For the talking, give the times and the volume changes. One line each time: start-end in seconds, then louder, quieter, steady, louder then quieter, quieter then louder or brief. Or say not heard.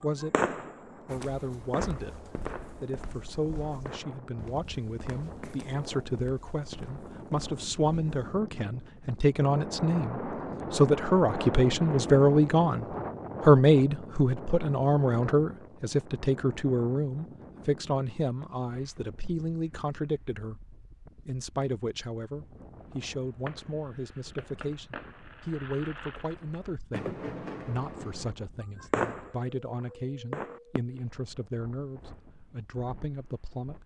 0.0-20.6 louder then quieter
21.2-33.8 steady.